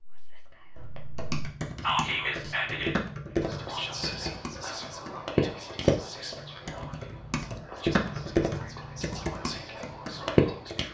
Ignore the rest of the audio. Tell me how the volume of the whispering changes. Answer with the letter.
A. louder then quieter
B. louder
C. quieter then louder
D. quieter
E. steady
D.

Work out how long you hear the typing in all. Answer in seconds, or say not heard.
10 s.